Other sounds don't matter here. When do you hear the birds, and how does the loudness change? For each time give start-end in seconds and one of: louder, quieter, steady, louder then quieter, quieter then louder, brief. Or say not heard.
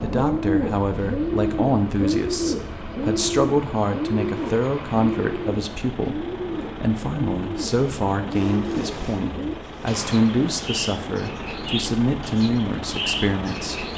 0.0-13.9 quieter.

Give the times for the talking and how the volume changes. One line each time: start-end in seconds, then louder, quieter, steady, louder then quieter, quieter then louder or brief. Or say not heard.
0.0-13.8 steady.